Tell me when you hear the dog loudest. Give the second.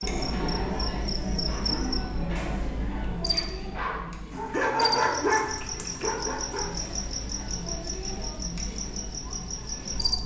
5 s.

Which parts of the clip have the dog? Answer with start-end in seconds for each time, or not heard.
0.0-6.7.